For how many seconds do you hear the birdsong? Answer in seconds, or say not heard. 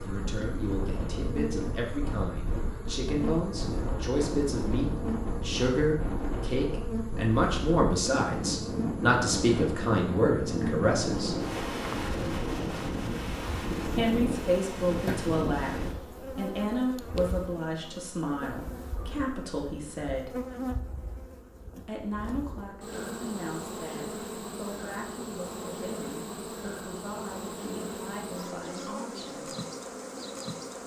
not heard.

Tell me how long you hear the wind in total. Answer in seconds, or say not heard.
16 s.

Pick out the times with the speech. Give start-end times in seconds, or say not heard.
0.0-11.3, 13.9-20.4, 21.9-29.5.